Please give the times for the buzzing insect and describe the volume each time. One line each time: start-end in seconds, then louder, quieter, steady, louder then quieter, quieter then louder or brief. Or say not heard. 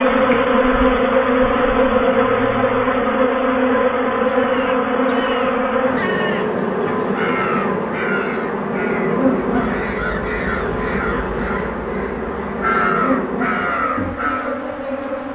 0.0-15.3 quieter.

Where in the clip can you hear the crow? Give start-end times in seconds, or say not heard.
4.2-14.7.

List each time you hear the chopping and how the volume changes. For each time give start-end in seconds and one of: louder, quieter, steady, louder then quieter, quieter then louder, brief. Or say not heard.
not heard.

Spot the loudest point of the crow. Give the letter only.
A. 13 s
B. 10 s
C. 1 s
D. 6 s
A.